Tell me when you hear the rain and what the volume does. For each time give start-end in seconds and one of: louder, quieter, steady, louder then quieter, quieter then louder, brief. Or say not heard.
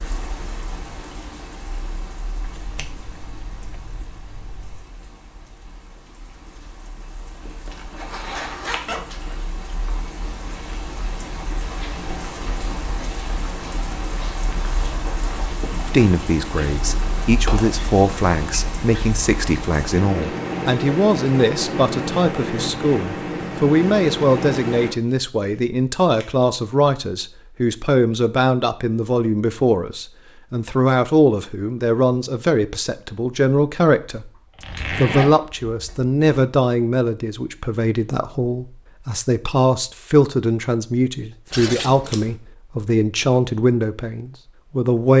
0.0-24.9 louder.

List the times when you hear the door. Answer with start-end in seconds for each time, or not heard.
not heard.